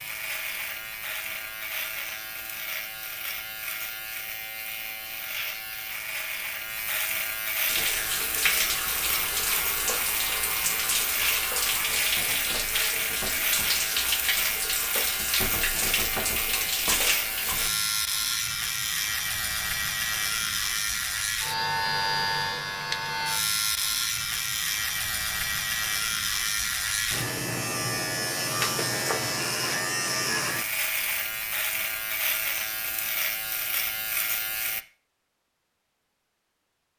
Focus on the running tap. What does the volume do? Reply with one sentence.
The loudness of the running tap stays about the same.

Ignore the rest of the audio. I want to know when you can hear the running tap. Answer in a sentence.
You can hear the running tap from 7.7 to 17.7 s.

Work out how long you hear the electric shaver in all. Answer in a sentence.
You can hear the electric shaver for 35 seconds altogether.